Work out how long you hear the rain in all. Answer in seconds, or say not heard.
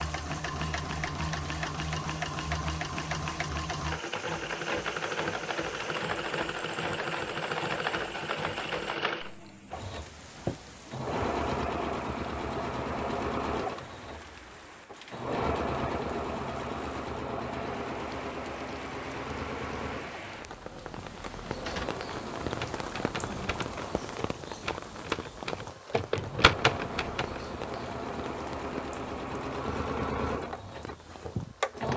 32 s.